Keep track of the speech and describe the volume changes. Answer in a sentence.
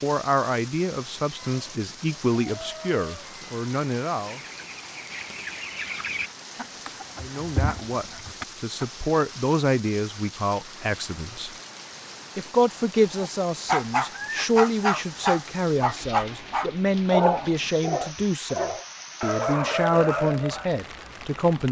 The volume of the speech stays about the same.